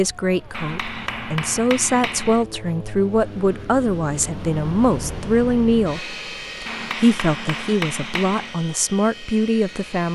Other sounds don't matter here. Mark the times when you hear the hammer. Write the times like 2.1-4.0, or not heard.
0.5-2.5, 6.7-8.6.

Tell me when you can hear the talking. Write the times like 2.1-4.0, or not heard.
0.0-10.1.